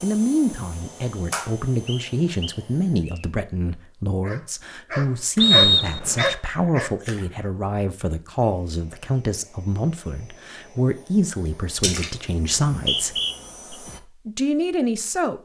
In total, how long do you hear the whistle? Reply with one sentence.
The whistle can be heard for 4 seconds in total.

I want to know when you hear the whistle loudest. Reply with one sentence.
The volume of the whistle peaks at 6 seconds.